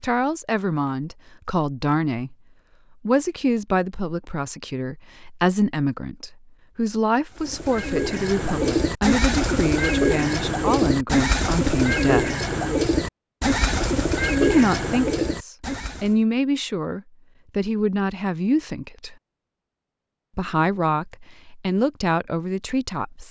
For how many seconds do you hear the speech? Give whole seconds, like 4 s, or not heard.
19 s.